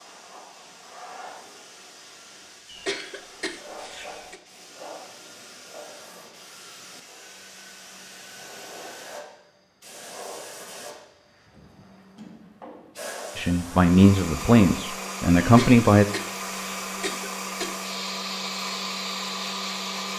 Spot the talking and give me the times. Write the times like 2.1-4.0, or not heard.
13.3-16.1.